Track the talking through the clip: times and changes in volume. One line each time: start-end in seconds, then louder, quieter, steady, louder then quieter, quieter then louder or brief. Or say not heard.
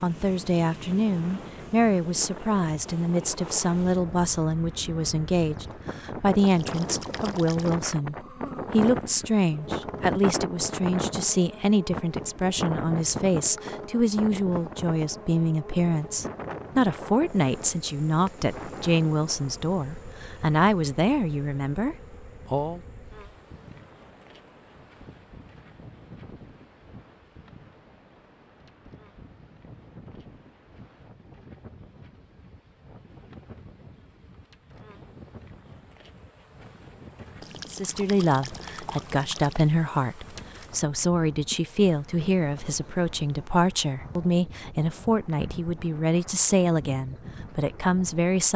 0.0-22.8 steady
37.7-48.5 steady.